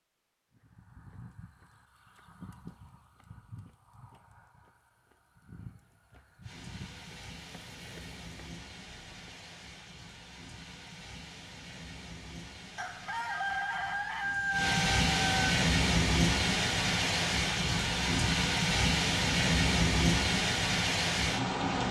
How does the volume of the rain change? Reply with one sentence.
The loudness of the rain goes up.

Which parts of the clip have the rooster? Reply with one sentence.
You can hear the rooster from 12.8 to 15.5 s.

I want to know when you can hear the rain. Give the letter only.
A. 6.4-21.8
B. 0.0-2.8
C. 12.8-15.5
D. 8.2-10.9
A.